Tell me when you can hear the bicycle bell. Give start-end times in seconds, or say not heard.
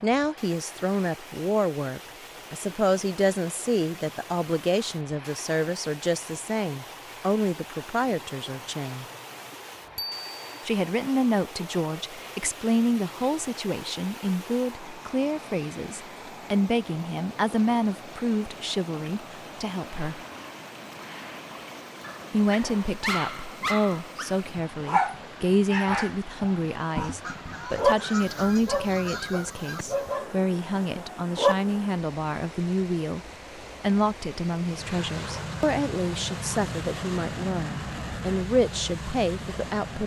9.9-10.7.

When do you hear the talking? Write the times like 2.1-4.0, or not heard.
0.0-9.1, 10.7-20.2, 22.3-33.2, 33.8-40.0.